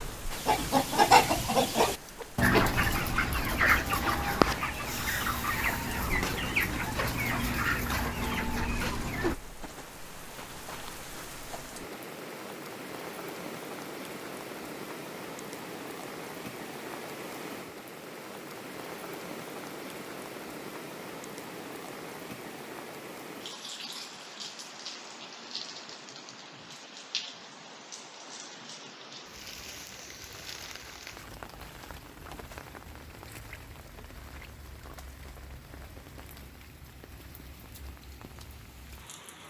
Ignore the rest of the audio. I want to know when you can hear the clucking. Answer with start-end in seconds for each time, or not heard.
0.3-9.3.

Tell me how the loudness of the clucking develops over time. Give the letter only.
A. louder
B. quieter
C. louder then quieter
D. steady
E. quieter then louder
B.